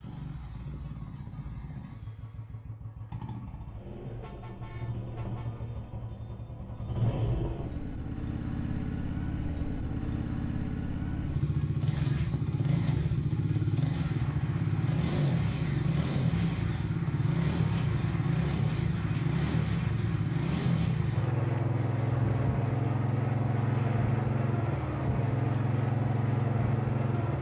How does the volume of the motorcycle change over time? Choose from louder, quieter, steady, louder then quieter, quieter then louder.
louder.